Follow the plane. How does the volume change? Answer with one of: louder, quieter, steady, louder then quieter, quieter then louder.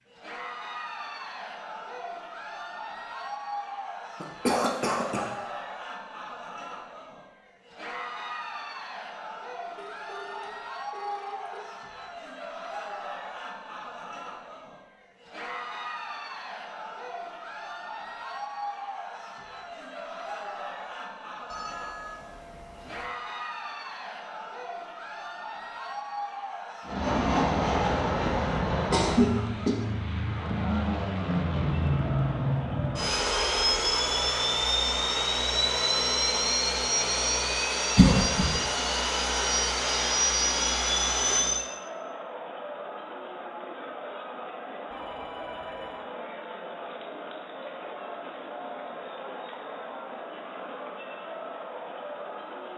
steady.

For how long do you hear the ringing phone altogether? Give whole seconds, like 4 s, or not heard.
5 s.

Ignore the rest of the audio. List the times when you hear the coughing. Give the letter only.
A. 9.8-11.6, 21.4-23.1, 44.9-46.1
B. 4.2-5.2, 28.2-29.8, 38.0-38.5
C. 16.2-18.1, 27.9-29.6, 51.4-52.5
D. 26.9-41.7
B.